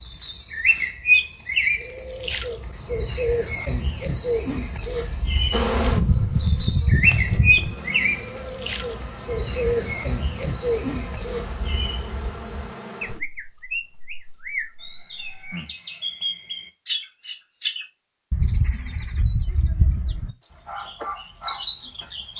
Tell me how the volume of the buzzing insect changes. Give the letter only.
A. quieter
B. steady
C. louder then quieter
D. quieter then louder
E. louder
A.